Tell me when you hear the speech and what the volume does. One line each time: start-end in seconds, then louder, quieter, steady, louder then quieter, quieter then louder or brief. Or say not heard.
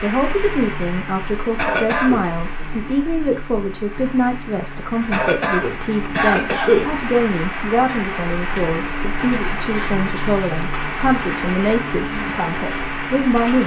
0.0-13.6 steady.